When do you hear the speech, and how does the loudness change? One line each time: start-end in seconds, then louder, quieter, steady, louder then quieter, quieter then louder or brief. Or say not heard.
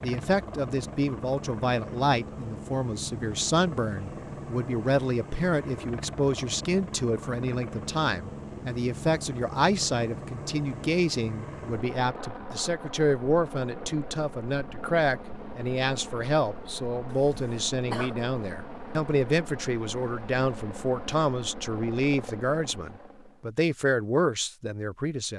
0.0-25.3 steady.